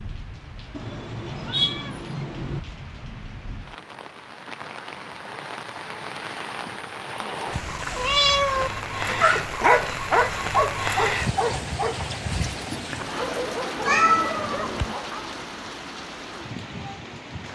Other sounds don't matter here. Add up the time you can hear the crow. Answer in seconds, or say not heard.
not heard.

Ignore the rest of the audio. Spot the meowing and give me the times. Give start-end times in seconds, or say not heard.
0.8-2.6, 7.5-8.7, 13.8-14.9.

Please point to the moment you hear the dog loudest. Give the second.
10 s.